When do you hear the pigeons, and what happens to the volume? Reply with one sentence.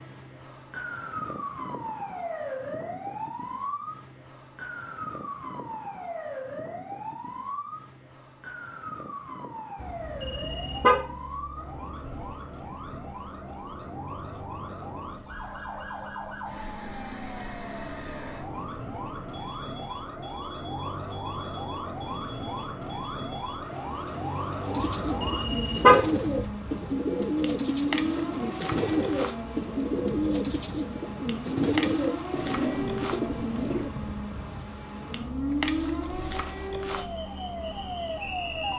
You can hear the pigeons from 24.6 to 34.0 s, at a steady volume.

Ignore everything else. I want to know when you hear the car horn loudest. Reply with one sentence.
The volume of the car horn peaks at 26 seconds.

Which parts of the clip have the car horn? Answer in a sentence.
The car horn can be heard from 9.8 to 11.0 s and from 25.1 to 26.4 s.